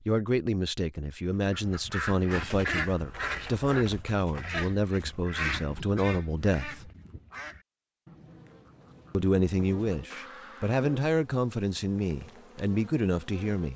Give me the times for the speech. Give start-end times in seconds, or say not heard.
0.1-6.9, 9.1-13.7.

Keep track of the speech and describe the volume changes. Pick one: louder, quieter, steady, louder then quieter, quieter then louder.
steady.